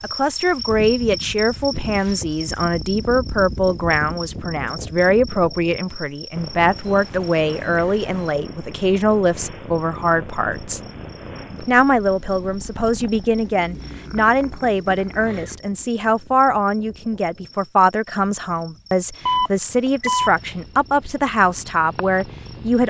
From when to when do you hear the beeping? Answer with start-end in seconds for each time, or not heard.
6.8-8.3, 19.2-20.4.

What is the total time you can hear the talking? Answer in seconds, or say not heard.
22 s.